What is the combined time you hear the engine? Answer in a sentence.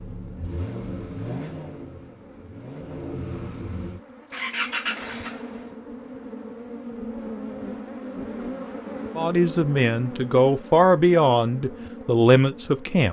The engine can be heard for 6 seconds in total.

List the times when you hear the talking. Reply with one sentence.
You can hear the talking from 9.2 to 13.0 s.